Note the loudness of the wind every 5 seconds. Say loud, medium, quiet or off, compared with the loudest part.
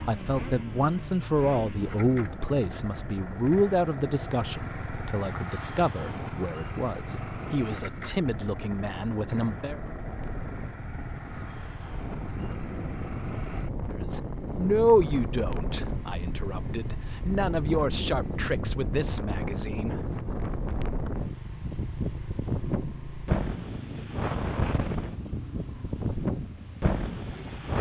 medium, medium, medium, loud, loud, loud.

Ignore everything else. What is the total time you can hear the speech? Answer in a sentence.
The speech can be heard for 16 seconds in total.